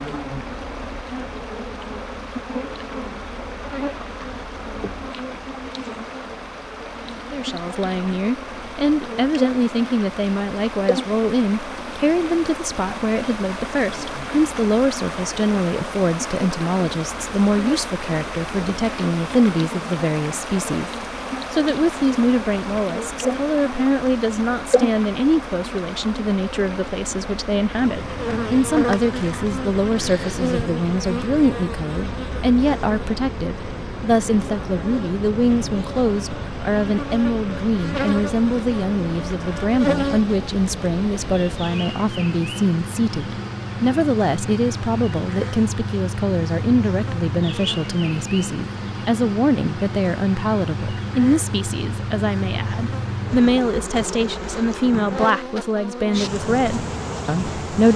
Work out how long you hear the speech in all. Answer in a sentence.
You can hear the speech for 50 seconds altogether.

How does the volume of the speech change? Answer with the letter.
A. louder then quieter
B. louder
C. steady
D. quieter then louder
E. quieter
C.